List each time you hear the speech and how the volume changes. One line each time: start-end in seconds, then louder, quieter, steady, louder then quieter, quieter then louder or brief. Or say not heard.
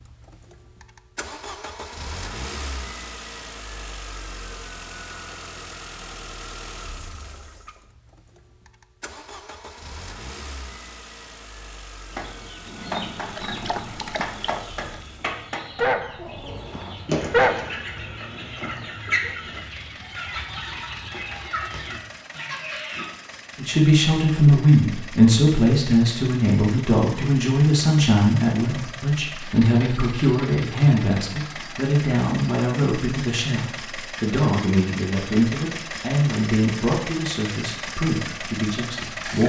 23.6-39.4 quieter.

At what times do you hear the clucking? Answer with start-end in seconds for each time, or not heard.
12.1-23.1.